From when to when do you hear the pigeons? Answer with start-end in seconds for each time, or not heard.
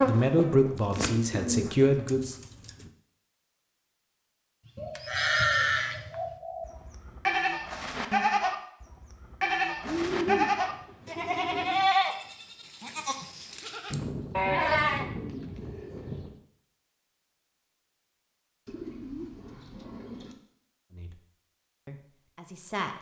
0.9-2.9, 4.8-6.7, 9.8-11.8, 13.9-16.4, 18.6-20.4.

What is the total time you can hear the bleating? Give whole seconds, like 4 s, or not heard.
10 s.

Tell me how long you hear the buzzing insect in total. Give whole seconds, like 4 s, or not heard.
2 s.